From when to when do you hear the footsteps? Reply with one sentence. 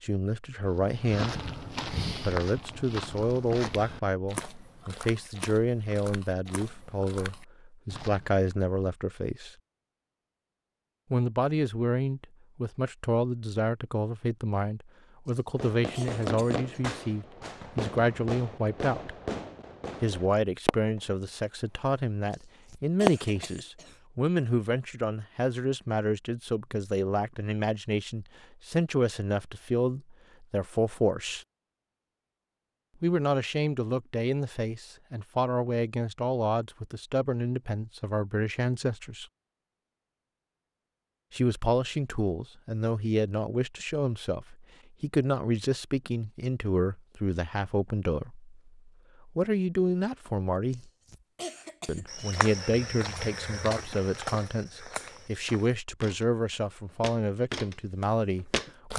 The footsteps can be heard from 0.8 to 8.4 s and from 52.0 to 58.9 s.